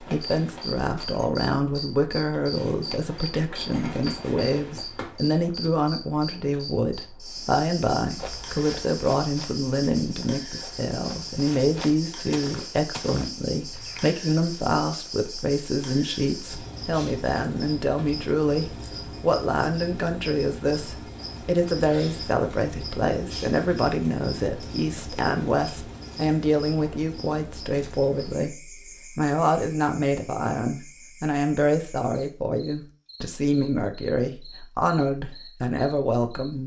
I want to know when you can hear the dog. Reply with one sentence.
The dog can't be heard in this clip.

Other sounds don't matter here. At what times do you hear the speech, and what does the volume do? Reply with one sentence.
You can hear the speech from 0.0 to 36.6 s, at a steady volume.